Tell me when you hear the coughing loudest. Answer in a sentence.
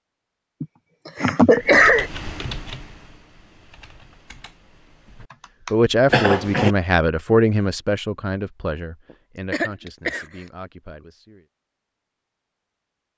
The volume of the coughing peaks at 2 seconds.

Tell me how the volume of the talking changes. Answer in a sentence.
The loudness of the talking goes down.